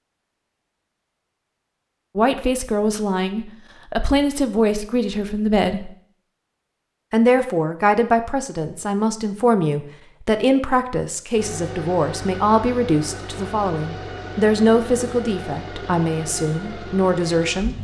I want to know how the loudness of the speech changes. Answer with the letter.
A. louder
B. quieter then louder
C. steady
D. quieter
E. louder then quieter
C.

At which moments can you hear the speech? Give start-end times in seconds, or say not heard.
2.1-5.9, 7.1-17.7.